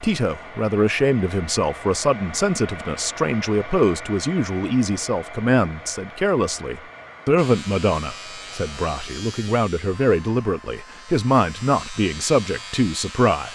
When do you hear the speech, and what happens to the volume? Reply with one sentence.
You can hear the speech from 0.0 to 13.5 s, at a steady volume.